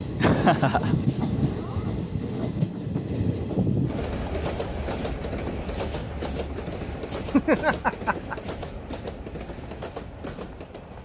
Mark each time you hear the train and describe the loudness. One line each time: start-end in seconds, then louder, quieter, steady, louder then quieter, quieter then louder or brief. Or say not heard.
0.0-10.9 quieter.